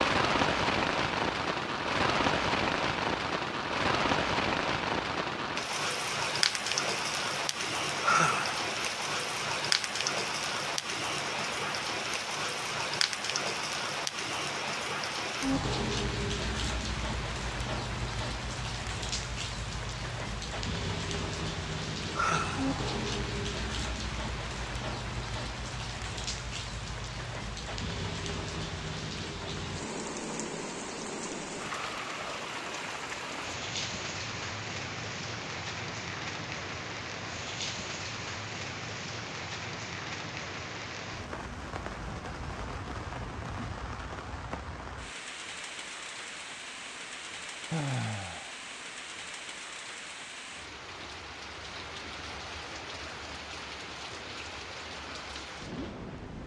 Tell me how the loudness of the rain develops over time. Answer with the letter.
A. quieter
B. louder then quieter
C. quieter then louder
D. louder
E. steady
A.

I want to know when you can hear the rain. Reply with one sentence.
You can hear the rain from 0.0 to 56.4 s.